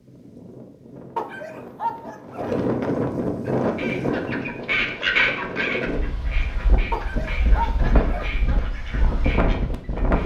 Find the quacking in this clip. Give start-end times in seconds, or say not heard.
3.5-10.2.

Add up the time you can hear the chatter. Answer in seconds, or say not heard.
not heard.